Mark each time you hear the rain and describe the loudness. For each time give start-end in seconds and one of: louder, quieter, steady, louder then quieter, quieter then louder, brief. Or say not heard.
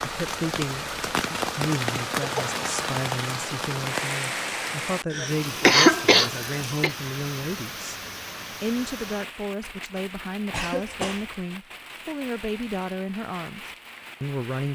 0.0-14.7 quieter.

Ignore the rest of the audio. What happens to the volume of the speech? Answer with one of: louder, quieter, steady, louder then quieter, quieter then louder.
steady.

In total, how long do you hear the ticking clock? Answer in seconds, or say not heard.
not heard.